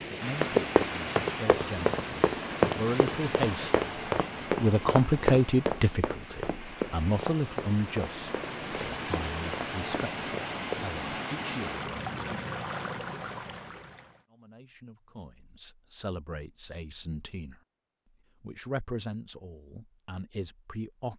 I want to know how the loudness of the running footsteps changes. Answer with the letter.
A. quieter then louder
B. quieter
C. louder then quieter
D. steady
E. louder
B.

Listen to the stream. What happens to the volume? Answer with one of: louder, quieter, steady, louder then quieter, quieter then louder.
quieter then louder.